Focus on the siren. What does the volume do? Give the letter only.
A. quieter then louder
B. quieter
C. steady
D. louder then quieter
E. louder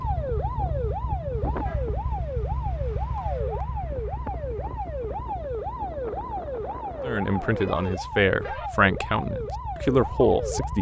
C.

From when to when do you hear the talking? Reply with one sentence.
The talking can be heard from 7.0 to 10.7 s.